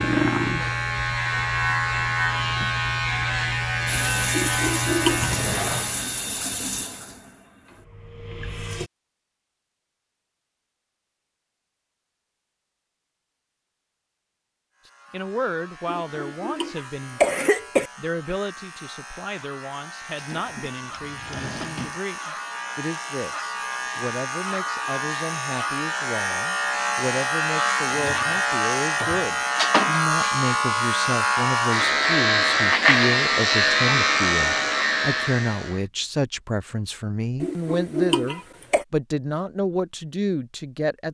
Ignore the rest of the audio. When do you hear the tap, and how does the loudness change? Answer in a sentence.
The tap can be heard from 3.9 to 8.9 s, getting quieter.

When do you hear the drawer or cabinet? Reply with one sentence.
The drawer or cabinet can be heard from 5.2 to 6.0 s, from 20.1 to 22.0 s and from 27.9 to 29.3 s.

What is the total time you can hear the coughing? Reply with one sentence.
The coughing can be heard for 5 seconds in total.